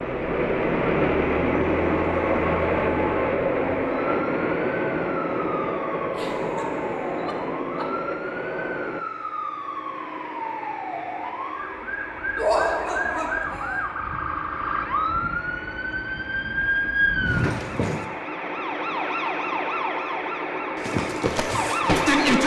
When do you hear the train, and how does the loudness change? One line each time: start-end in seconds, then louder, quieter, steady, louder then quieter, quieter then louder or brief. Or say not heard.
0.0-22.4 quieter then louder.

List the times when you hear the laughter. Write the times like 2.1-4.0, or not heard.
6.1-7.8, 12.3-13.8.